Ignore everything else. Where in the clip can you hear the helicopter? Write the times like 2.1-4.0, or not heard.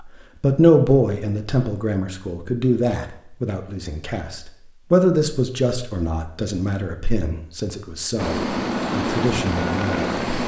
8.2-10.4.